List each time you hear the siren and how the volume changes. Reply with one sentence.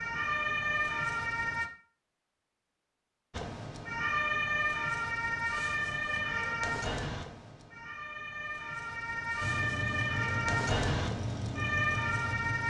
You can hear the siren briefly from 0.0 to 1.7 s; and from 3.3 to 12.6 s, getting quieter then louder.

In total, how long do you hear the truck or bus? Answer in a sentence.
The truck or bus can be heard for 3 seconds in total.